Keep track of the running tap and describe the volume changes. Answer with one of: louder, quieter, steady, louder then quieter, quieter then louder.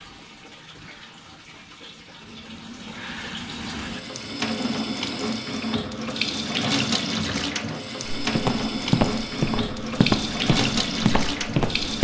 louder.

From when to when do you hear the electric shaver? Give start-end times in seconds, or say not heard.
not heard.